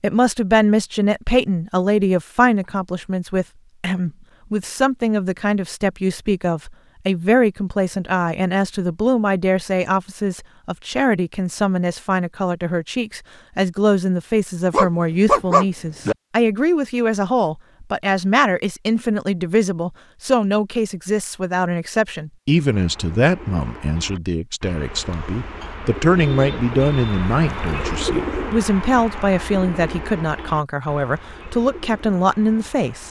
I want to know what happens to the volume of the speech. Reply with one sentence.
The volume of the speech stays about the same.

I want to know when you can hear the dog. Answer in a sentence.
The dog can be heard from 14.7 to 16.1 s.